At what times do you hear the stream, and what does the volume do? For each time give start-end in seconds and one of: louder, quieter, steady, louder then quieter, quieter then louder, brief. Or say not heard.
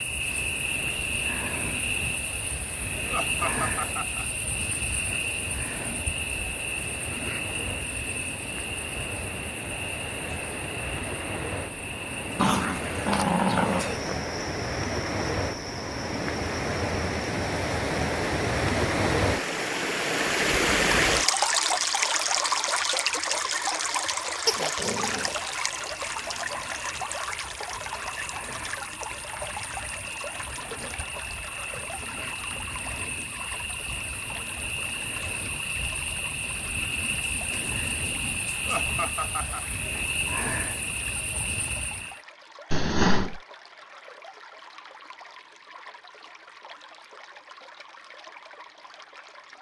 0.0-49.5 louder then quieter.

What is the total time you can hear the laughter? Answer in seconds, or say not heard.
2 s.